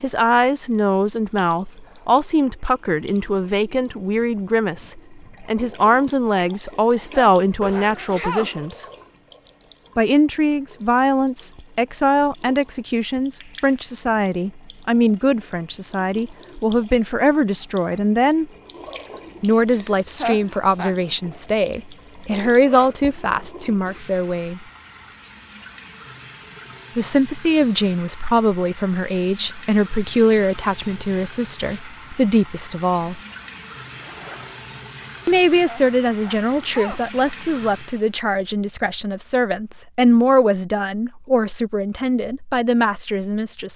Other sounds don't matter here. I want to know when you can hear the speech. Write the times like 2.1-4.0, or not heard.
0.0-8.8, 9.9-18.4, 19.4-24.6, 26.9-33.2, 35.2-43.7.